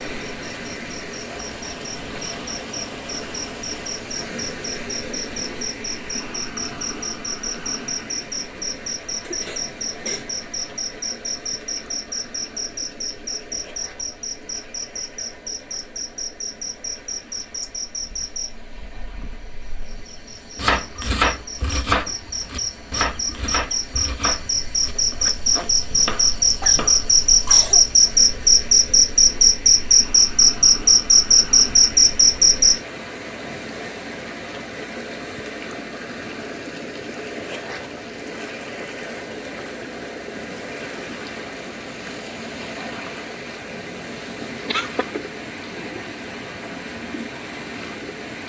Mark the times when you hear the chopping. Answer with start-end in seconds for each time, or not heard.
20.6-27.1.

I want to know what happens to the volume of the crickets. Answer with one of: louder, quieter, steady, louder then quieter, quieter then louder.
louder.